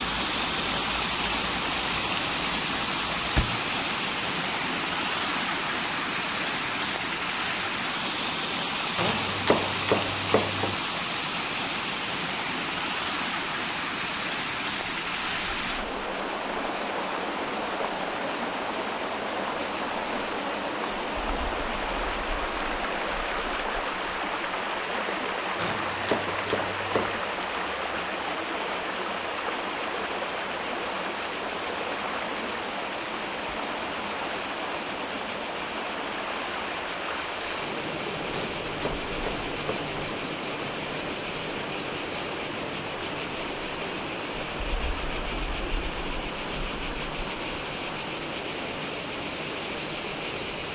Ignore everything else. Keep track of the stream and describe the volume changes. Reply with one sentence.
The loudness of the stream goes down.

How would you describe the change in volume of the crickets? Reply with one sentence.
The loudness of the crickets goes up.